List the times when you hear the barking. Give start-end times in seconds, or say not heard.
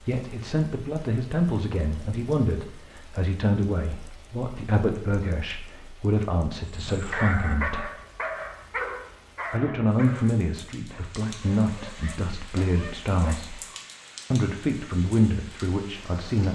6.6-13.8.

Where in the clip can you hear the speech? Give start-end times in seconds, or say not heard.
0.0-7.9, 9.5-13.6, 14.3-16.4.